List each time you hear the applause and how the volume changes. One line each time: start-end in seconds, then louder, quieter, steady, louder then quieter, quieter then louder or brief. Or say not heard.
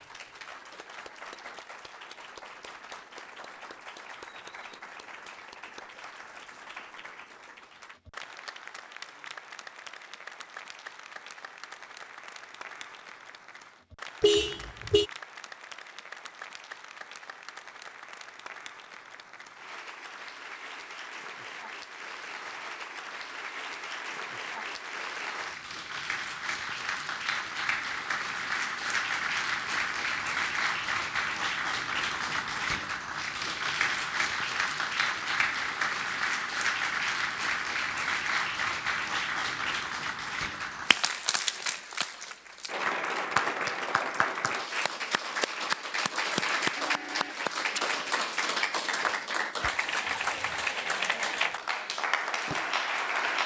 0.0-53.4 louder.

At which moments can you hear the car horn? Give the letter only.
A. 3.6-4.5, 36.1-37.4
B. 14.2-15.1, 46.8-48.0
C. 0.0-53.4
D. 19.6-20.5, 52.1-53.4
B.